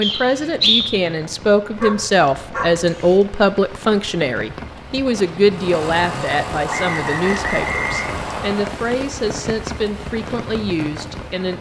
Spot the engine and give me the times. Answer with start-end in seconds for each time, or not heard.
5.5-8.5.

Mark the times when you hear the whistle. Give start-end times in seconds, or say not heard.
0.0-0.8, 6.7-8.7.